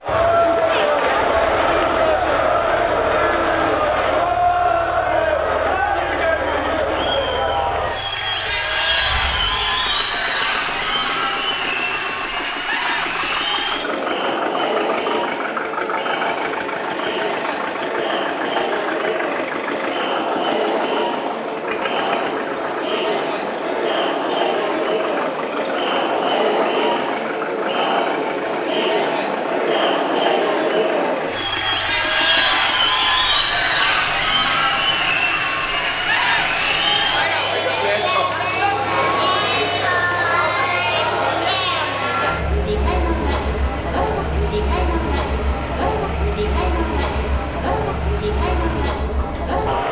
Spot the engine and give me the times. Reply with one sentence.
You can hear the engine from 0.0 to 49.8 s.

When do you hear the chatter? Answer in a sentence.
The chatter can be heard from 0.0 to 49.8 s.